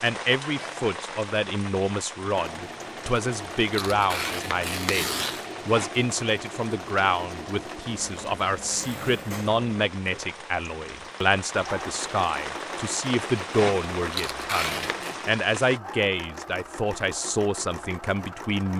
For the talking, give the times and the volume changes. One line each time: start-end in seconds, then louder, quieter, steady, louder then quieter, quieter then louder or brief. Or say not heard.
0.0-18.7 steady.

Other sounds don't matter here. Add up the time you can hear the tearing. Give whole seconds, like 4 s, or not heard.
3 s.